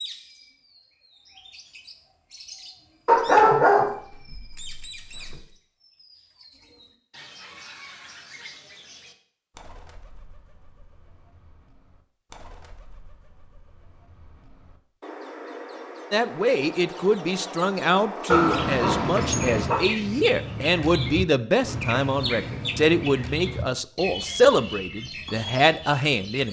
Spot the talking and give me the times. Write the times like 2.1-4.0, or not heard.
16.1-26.4.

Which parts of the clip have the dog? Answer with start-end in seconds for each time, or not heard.
3.0-5.3, 18.3-19.8.